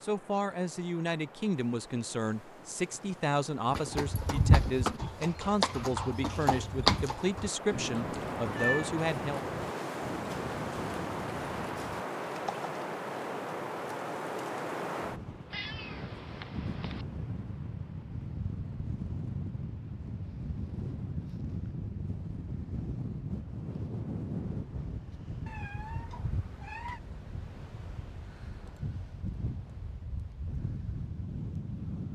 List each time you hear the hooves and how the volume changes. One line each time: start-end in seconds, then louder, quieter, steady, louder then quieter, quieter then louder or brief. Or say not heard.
3.7-12.7 quieter.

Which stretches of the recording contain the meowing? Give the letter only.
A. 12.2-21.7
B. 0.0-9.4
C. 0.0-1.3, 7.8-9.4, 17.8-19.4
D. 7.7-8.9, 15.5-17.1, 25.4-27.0
D.